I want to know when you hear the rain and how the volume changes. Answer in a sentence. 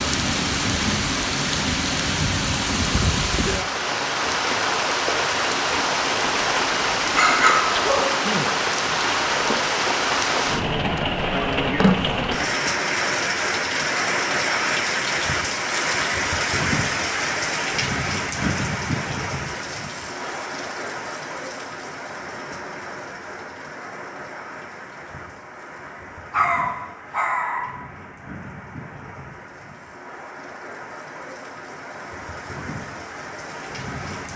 The rain can be heard from 0.0 to 34.3 s, getting quieter.